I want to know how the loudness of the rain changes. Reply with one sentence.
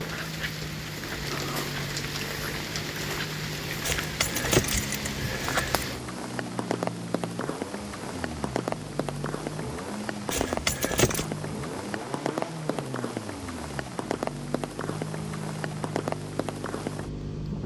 The volume of the rain stays about the same.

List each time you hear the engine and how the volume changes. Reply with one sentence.
You can hear the engine from 0.0 to 17.6 s, at a steady volume.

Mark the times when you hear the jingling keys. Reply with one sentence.
You can hear the jingling keys from 3.8 to 5.8 s and from 10.3 to 11.2 s.